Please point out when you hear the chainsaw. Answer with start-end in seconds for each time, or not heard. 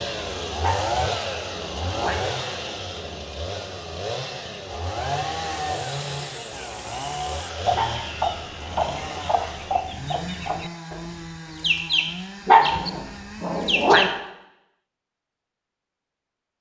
0.0-13.9.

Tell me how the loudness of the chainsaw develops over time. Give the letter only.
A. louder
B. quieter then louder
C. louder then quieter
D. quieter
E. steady
D.